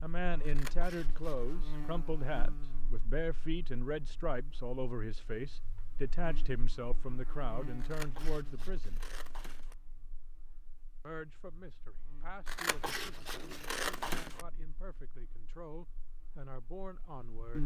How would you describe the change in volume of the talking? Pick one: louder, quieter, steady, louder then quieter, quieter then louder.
quieter.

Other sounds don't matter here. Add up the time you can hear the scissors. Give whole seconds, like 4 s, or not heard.
5 s.